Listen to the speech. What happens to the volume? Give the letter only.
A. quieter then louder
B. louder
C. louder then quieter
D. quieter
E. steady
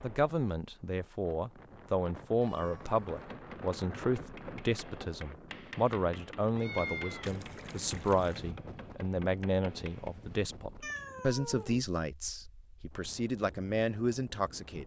E.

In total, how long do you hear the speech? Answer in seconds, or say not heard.
15 s.